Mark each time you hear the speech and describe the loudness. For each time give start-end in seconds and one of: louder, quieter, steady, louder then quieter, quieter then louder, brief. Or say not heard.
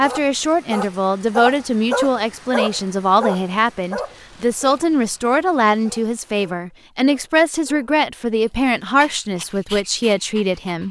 0.0-10.8 steady.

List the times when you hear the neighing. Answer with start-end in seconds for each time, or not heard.
not heard.